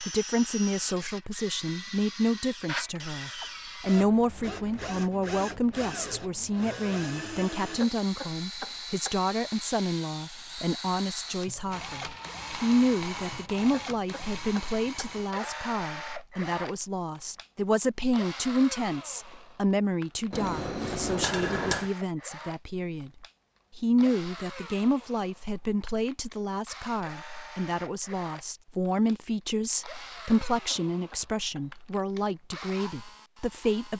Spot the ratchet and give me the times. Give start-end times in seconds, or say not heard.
not heard.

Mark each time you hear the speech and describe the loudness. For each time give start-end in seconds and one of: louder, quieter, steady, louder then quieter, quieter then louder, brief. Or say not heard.
0.0-33.9 steady.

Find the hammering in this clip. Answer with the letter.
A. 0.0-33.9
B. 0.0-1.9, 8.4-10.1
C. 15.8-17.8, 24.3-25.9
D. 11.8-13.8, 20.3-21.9
D.